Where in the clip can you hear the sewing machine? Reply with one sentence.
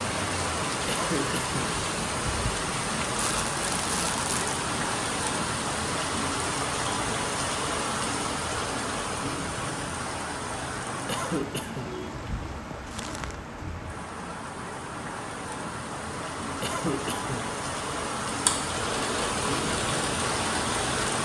The sewing machine can be heard from 18.4 to 21.2 s.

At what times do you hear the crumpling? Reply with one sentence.
The crumpling can be heard from 3.1 to 4.5 s and from 12.8 to 13.4 s.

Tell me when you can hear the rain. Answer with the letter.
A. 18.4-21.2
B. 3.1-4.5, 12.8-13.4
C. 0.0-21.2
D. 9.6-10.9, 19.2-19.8
C.